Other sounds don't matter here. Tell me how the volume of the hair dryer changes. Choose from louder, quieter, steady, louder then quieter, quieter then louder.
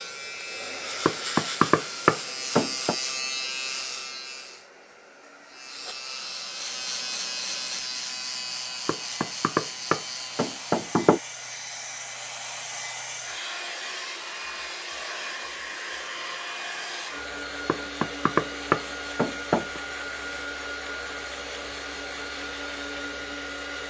louder.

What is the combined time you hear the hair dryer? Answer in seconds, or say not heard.
24 s.